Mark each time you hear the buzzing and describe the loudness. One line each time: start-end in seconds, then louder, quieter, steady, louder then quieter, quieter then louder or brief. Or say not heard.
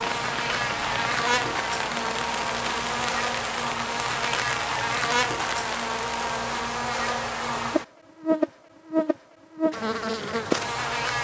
0.0-11.1 steady.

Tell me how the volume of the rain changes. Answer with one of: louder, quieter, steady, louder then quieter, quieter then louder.
steady.